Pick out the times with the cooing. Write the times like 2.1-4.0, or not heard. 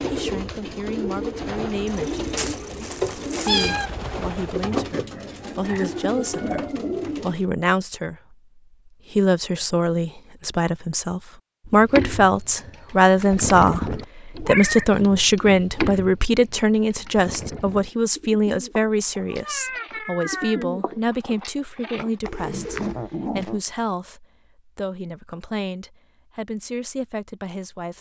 0.0-7.5, 11.7-23.6.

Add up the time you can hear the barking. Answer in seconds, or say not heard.
not heard.